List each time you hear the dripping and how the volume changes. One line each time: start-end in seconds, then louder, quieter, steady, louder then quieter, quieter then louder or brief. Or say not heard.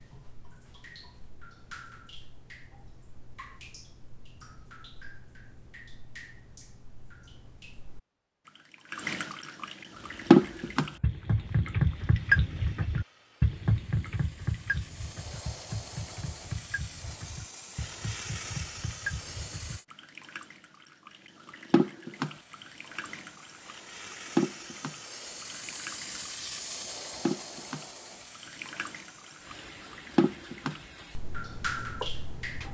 0.0-32.6 louder then quieter.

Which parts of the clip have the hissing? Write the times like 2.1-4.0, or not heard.
9.9-19.9, 22.1-32.6.